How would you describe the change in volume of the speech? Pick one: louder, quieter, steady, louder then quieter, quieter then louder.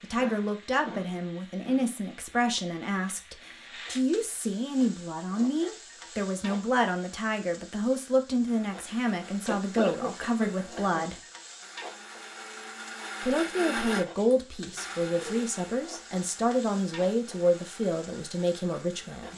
steady.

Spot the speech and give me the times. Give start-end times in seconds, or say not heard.
0.0-11.2, 13.2-19.3.